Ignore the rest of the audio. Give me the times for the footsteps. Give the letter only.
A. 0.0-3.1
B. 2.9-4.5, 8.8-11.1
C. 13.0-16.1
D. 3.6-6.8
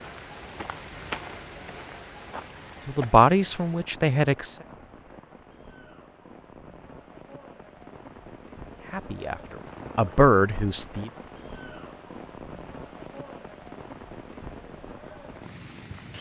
A.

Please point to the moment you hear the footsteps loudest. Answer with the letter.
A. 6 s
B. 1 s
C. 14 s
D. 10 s
B.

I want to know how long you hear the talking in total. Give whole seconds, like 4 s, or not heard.
4 s.